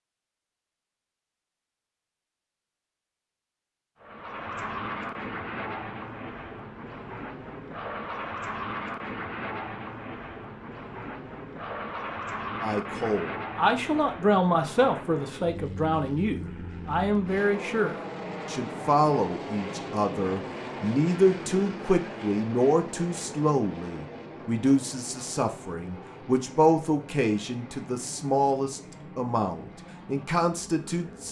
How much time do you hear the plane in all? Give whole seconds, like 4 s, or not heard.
27 s.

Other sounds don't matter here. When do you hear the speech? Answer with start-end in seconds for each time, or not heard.
12.6-31.2.